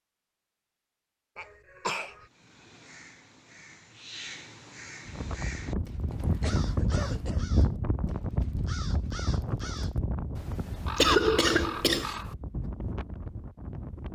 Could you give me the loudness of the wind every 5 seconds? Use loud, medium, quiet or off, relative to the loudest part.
off, loud, medium.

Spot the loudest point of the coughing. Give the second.
11 s.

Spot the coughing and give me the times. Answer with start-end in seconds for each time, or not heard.
1.4-2.2, 6.1-7.5, 10.9-12.1.